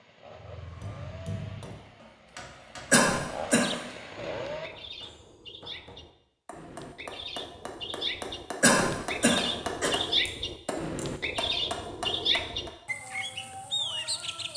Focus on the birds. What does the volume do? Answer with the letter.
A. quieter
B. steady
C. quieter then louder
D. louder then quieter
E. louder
E.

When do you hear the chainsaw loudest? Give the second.
4 s.